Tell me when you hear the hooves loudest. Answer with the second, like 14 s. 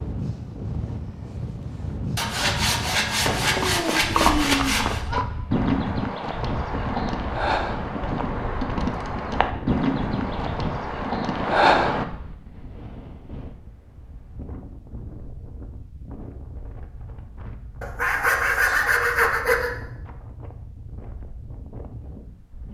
12 s.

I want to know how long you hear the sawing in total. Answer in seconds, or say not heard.
5 s.